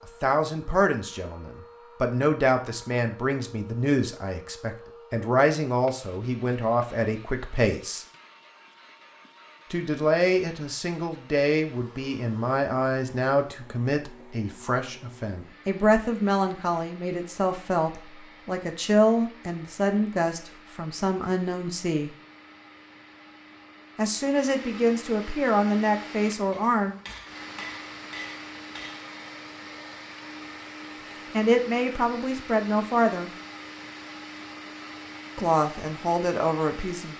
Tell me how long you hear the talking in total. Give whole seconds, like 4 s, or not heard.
27 s.